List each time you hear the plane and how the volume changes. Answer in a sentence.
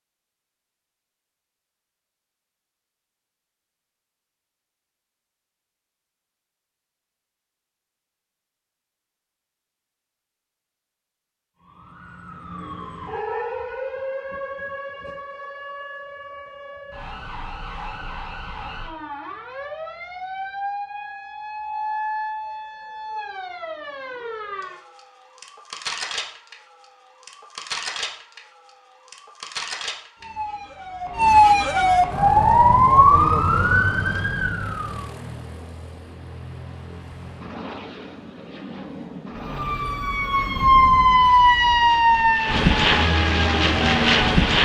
The plane can be heard from 32.0 to 44.5 s, getting louder.